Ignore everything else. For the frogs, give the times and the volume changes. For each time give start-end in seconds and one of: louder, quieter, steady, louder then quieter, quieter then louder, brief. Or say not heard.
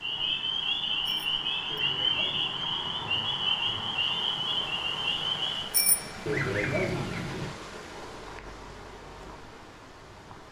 0.0-5.7 steady.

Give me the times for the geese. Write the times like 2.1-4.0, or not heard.
1.7-2.9, 6.2-7.5.